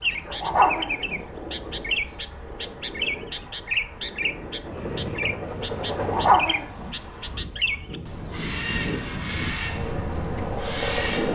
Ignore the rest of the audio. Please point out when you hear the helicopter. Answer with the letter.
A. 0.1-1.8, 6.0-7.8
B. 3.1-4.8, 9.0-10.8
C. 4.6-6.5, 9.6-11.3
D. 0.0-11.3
C.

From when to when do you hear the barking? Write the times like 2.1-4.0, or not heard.
0.1-1.8, 6.0-7.8.